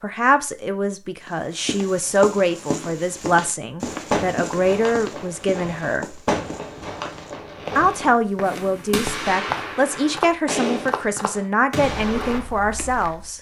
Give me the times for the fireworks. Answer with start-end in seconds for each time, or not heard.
3.9-12.4.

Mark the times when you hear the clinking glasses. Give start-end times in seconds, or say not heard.
not heard.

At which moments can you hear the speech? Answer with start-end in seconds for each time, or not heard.
0.0-6.2, 7.8-13.3.